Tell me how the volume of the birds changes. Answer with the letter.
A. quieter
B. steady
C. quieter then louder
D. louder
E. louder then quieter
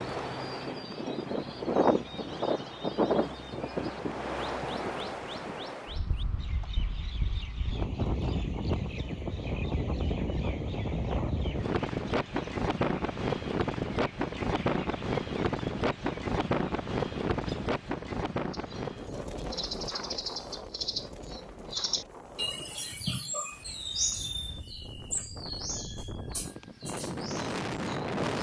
D.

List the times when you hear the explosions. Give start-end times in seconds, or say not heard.
not heard.